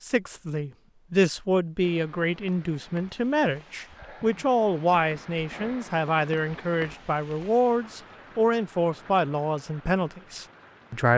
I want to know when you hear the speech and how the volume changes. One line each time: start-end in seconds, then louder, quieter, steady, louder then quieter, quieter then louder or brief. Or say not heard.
0.0-11.1 steady.